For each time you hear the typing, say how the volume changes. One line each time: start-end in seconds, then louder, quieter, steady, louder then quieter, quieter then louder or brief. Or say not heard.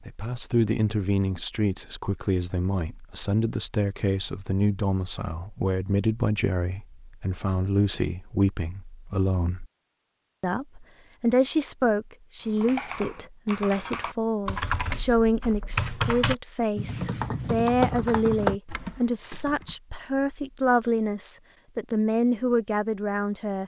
12.4-19.8 louder.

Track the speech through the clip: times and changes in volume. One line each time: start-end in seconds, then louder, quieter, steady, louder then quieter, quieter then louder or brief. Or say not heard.
0.0-9.7 steady
10.4-23.6 steady.